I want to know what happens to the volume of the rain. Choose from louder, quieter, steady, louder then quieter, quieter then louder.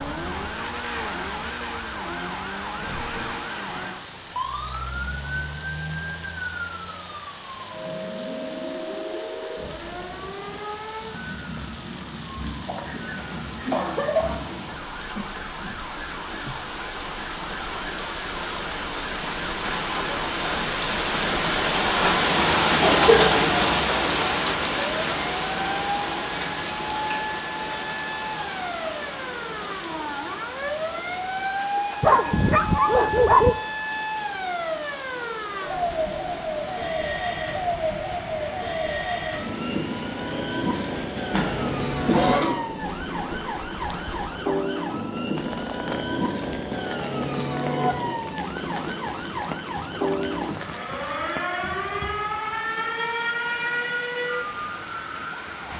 louder then quieter.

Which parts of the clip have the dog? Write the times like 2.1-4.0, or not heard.
32.0-33.5.